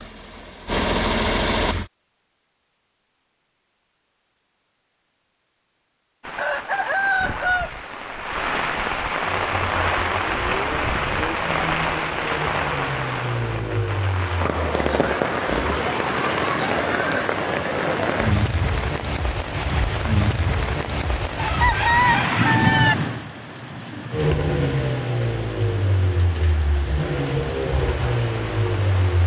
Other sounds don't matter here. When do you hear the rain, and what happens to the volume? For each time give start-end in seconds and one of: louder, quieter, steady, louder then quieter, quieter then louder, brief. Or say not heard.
6.2-29.2 quieter.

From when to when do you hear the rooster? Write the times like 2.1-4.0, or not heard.
6.3-7.7, 21.4-22.9.